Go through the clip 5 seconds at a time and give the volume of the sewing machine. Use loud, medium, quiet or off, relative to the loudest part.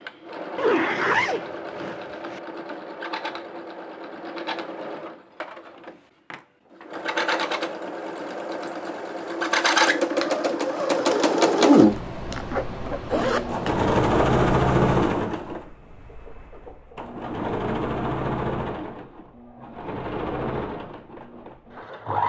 quiet, medium, loud, medium, medium.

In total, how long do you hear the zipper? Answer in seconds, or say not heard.
4 s.